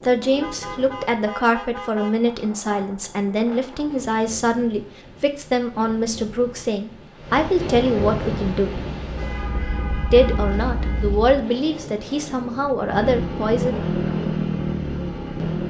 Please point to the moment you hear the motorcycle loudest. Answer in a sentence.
The volume of the motorcycle peaks at 14 seconds.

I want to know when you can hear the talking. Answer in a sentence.
You can hear the talking from 0.0 to 8.8 s and from 10.1 to 13.8 s.